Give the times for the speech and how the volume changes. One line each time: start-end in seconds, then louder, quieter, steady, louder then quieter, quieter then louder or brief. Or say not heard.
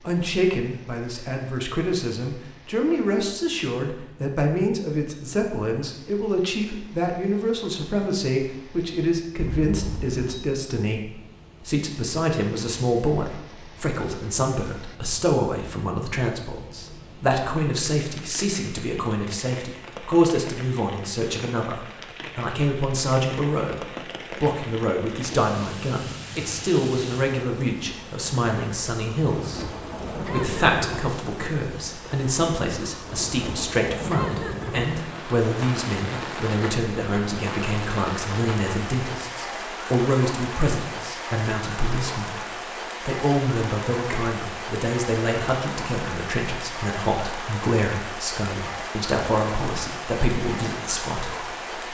0.0-51.8 steady.